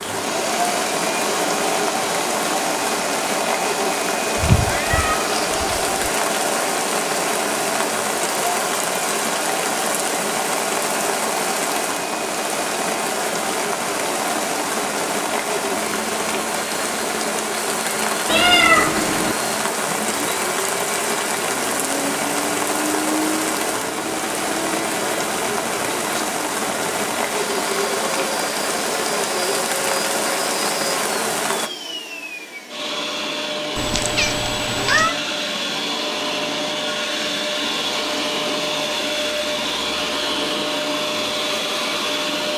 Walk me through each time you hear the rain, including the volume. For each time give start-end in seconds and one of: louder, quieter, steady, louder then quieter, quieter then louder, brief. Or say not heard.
0.0-31.7 steady.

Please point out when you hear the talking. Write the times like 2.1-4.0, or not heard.
not heard.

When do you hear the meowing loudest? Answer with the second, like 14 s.
19 s.